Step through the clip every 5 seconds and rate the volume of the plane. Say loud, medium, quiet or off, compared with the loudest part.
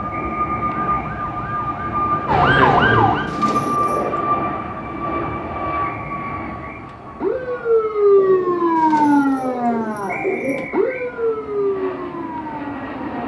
loud, medium, medium.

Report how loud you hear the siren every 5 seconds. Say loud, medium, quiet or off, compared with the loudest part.
loud, loud, medium.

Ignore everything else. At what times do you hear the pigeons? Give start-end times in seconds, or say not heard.
2.6-4.2, 8.2-10.7.